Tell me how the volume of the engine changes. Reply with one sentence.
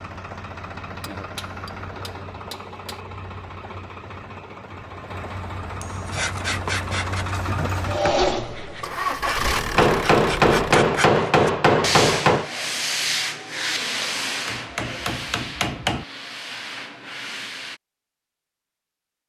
The volume of the engine goes up.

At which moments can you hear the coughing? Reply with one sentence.
You can't hear the coughing here.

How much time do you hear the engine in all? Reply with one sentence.
You can hear the engine for 11 seconds altogether.